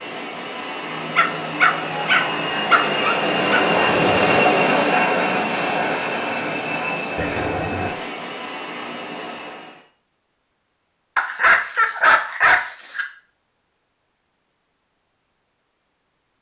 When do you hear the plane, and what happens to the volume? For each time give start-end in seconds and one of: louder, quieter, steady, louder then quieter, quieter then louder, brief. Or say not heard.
0.0-9.8 louder then quieter.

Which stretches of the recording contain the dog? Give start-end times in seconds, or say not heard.
1.1-3.6, 7.2-8.0, 11.2-13.1.